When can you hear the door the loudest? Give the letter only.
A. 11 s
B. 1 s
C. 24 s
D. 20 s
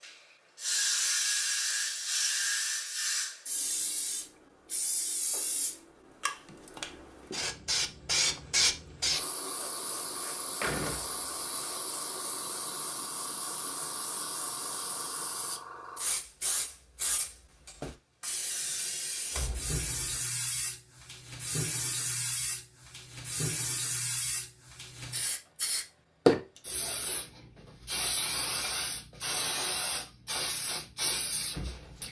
A.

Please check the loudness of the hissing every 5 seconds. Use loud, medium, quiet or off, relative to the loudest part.
loud, loud, medium, medium, medium, loud, medium.